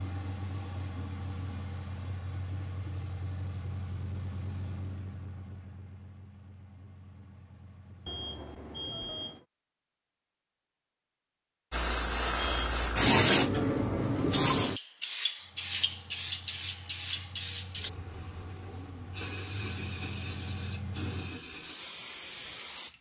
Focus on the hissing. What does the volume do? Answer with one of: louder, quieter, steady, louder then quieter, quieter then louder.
quieter.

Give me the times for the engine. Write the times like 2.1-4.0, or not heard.
0.0-8.2, 15.4-21.4.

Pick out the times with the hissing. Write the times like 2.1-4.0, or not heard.
11.7-22.9.